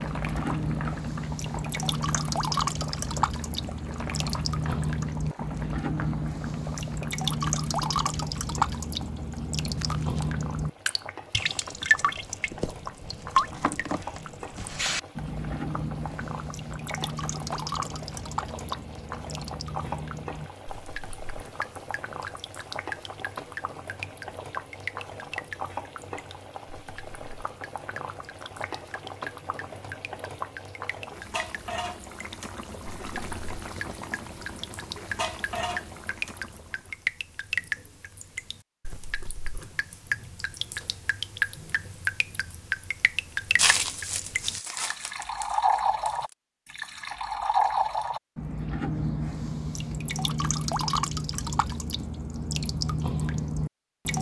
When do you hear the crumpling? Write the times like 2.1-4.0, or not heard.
9.8-10.3, 43.5-46.1.